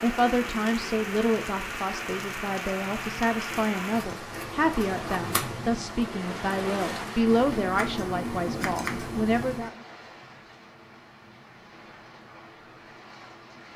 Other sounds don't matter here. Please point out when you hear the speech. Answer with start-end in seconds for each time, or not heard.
0.0-9.7.